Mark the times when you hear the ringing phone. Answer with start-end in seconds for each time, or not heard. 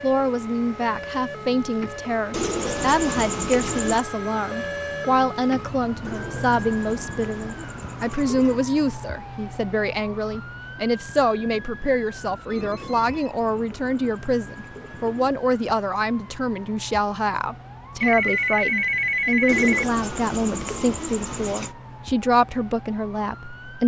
3.9-5.2, 11.3-13.3, 18.0-19.9.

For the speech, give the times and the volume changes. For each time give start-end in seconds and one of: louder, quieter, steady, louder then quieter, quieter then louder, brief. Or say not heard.
0.0-23.8 steady.